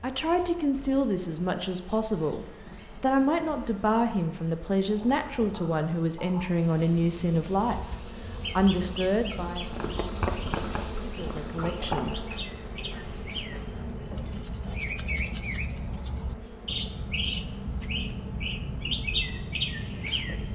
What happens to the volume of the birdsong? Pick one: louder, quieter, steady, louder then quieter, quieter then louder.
louder.